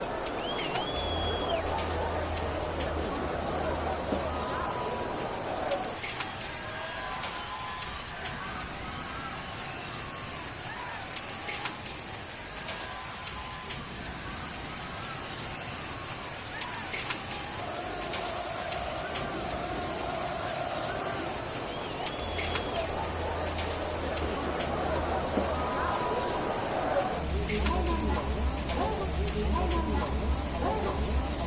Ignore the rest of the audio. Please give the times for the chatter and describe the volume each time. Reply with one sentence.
You can hear the chatter from 0.0 to 31.4 s, getting quieter then louder.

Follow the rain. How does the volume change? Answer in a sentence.
The volume of the rain stays about the same.